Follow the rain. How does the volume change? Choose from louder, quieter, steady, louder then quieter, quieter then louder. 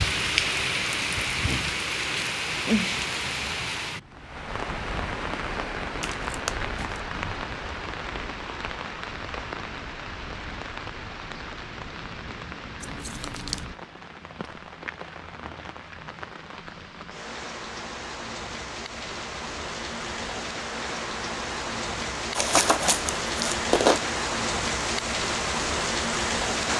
quieter then louder.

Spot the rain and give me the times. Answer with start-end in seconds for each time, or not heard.
0.0-26.7.